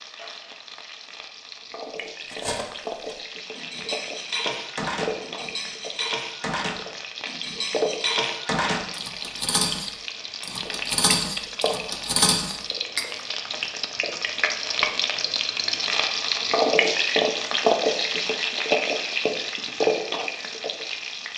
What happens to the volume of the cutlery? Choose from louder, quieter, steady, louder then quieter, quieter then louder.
louder.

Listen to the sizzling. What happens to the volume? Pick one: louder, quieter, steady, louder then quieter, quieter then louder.
louder.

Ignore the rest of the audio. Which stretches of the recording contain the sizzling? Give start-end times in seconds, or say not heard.
0.0-21.3.